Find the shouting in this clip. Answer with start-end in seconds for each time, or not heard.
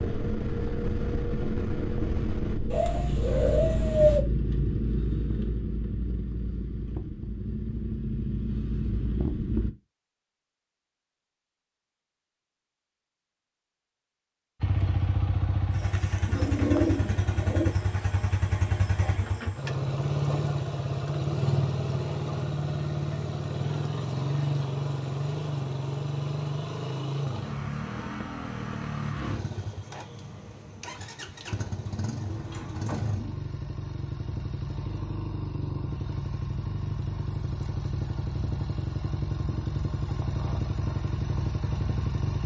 not heard.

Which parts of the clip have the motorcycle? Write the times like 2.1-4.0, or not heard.
0.0-9.7, 14.6-42.4.